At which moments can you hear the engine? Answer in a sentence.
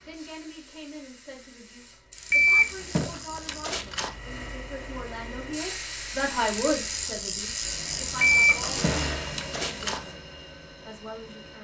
The engine can be heard from 7.6 to 11.5 s.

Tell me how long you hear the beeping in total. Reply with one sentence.
The beeping can be heard for 4 seconds in total.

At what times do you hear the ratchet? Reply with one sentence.
You can hear the ratchet from 2.1 to 3.8 s and from 6.5 to 9.2 s.